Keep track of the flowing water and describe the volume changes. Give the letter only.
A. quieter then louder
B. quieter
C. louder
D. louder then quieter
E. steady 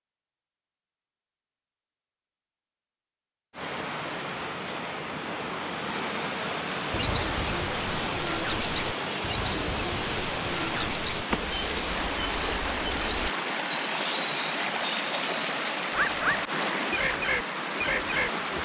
E.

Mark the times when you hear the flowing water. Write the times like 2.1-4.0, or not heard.
3.5-18.5.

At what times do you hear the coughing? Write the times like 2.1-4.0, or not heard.
not heard.